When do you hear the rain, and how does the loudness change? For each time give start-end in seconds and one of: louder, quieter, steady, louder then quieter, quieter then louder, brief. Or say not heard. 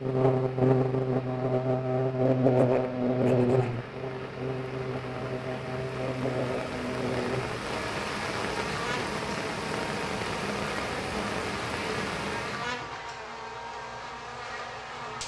0.0-12.8 louder.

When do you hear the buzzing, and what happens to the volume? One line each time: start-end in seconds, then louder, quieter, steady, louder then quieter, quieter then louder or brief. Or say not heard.
0.0-15.2 quieter.